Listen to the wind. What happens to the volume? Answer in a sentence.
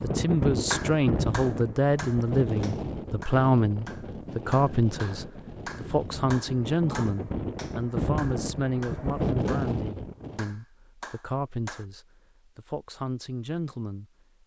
The loudness of the wind goes down, then up.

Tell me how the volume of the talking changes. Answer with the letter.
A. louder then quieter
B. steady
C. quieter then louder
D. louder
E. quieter
E.